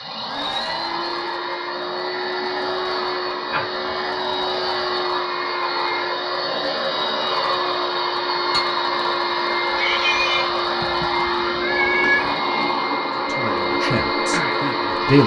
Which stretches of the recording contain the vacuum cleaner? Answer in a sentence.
The vacuum cleaner can be heard from 0.0 to 15.2 s.